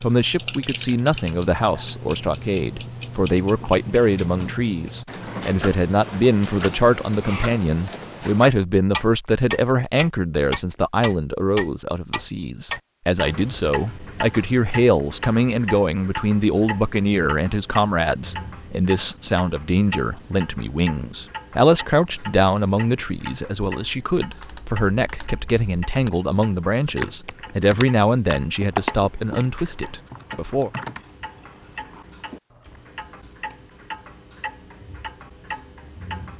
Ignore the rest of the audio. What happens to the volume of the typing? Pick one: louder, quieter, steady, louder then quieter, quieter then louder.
louder then quieter.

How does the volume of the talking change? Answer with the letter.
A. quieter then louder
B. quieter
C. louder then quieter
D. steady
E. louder
D.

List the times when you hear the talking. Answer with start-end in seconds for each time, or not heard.
0.0-30.7.